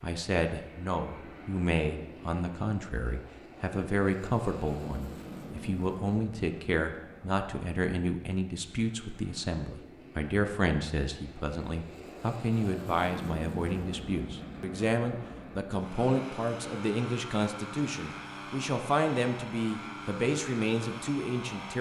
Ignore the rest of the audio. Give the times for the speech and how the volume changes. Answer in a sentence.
You can hear the speech from 0.0 to 21.7 s, at a steady volume.